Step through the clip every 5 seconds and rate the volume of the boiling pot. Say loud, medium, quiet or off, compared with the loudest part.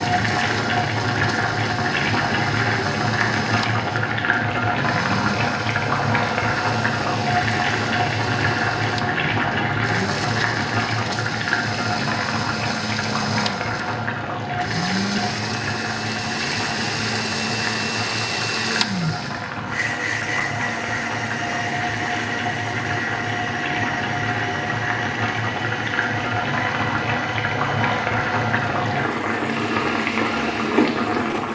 loud, loud, loud, medium, medium, loud, loud.